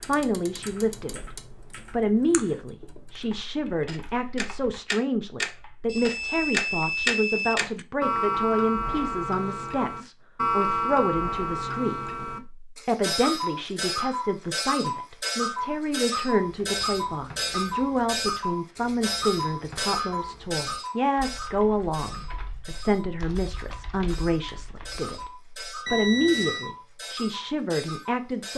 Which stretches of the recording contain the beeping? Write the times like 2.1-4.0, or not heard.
5.8-7.8, 25.9-26.7.